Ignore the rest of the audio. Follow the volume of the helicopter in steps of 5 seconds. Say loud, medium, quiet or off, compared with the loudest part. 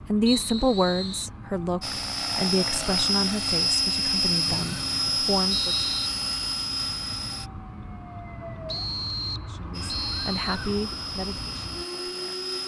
loud, loud, medium.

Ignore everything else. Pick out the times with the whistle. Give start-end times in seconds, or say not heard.
0.2-1.3, 4.5-6.1, 8.7-10.4.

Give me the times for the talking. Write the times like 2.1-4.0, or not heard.
0.1-5.8, 9.4-12.4.